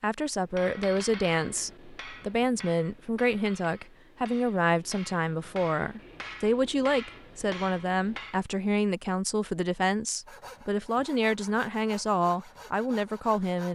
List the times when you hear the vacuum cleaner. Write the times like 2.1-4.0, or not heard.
not heard.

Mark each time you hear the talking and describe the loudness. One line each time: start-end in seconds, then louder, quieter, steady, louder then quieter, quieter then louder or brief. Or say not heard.
0.0-13.7 steady.